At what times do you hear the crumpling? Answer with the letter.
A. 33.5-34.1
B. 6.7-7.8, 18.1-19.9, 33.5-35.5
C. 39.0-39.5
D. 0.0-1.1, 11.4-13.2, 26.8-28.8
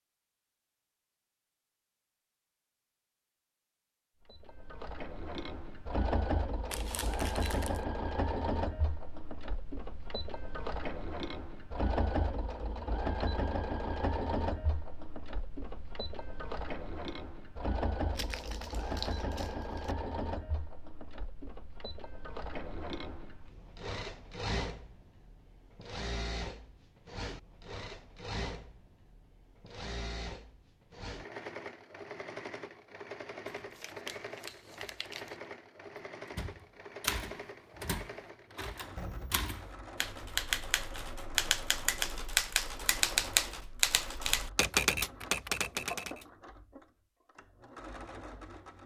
B.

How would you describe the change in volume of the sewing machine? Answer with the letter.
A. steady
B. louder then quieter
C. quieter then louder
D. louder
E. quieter
E.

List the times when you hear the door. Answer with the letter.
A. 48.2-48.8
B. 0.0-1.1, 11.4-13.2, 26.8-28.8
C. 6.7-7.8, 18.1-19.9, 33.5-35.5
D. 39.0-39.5
D.